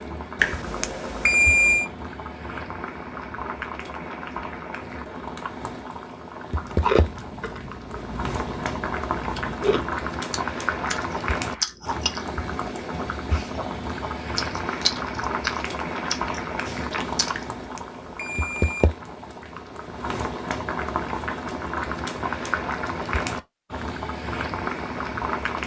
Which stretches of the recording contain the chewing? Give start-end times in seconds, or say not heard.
6.5-17.6.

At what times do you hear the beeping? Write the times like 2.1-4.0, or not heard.
0.3-1.9, 17.3-18.9.